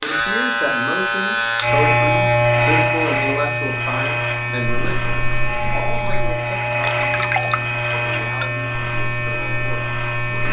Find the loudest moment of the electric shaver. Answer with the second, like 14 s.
2 s.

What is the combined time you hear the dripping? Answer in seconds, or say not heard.
6 s.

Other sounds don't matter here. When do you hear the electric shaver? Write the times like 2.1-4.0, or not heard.
0.0-10.4.